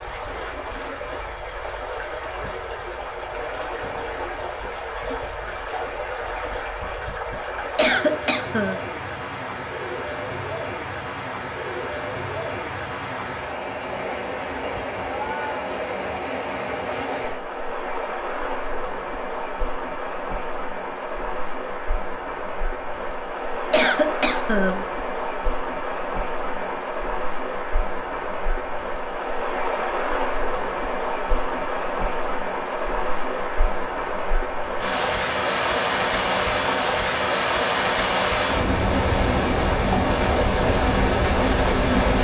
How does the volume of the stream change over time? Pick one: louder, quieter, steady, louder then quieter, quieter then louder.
louder.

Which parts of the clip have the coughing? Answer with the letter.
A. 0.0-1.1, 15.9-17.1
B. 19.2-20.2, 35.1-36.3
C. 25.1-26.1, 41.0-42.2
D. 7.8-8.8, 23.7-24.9
D.